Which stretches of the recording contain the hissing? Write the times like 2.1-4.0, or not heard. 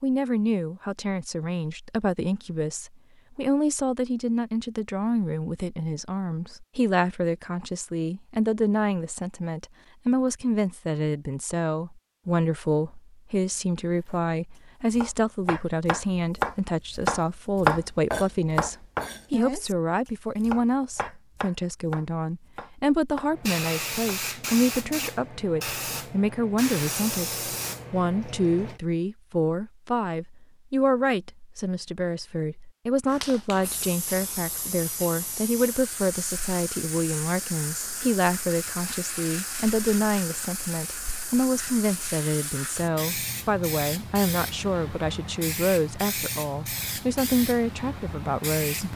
23.3-28.8, 33.0-48.9.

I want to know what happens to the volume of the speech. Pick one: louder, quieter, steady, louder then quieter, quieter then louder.
steady.